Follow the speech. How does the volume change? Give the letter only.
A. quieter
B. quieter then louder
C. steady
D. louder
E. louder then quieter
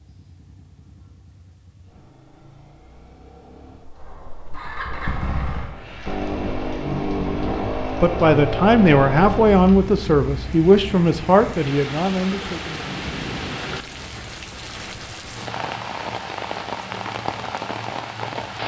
A.